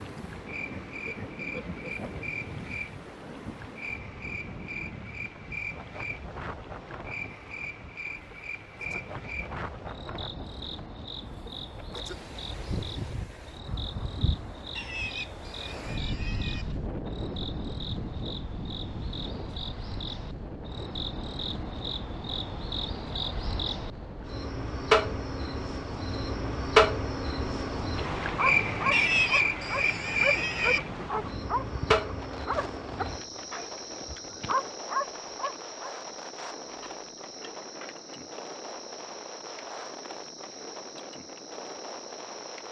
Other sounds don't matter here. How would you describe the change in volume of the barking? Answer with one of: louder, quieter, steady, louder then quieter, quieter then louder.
quieter then louder.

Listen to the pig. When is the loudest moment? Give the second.
29 s.